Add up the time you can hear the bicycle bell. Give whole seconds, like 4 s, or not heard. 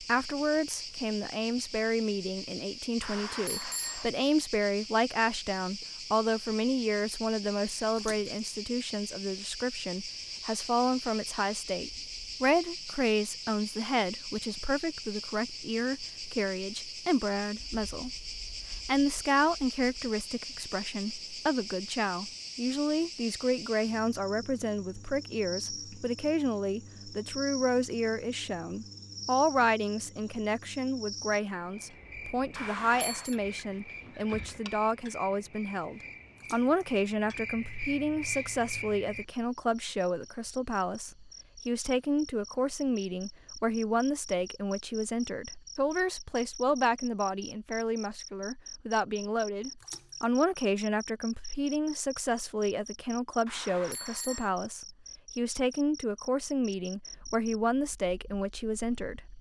3 s.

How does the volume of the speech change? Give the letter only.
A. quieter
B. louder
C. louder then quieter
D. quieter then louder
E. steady
E.